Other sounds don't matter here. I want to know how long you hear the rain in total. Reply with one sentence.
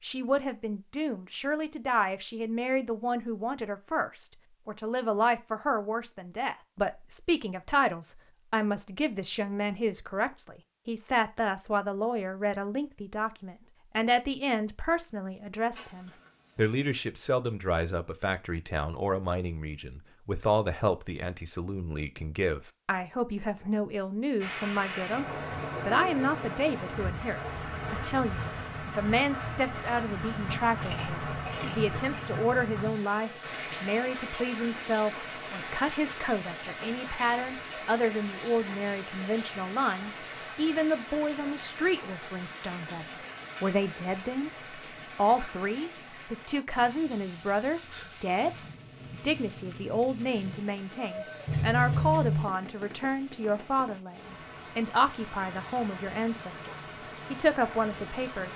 You can hear the rain for 34 seconds altogether.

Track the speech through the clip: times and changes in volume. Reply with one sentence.
You can hear the speech from 0.0 to 44.5 s, at a steady volume; and from 45.1 to 58.5 s, at a steady volume.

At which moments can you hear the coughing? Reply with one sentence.
You can't hear the coughing here.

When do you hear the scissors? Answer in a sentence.
The scissors can be heard from 15.7 to 16.8 s, from 30.8 to 32.3 s and from 51.5 to 52.5 s.